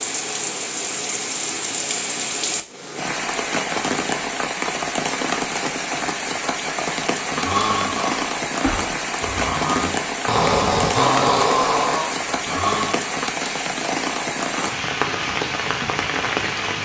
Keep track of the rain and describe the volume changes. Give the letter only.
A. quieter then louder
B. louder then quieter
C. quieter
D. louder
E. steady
E.